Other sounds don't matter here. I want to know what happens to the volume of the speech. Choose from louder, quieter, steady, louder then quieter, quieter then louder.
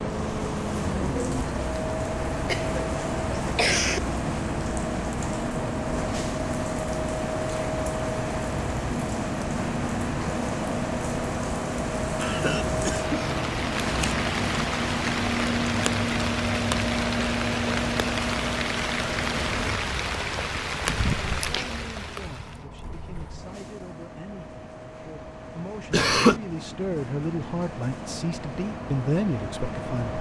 louder.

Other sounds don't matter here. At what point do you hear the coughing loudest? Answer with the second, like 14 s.
26 s.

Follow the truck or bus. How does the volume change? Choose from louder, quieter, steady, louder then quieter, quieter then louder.
quieter.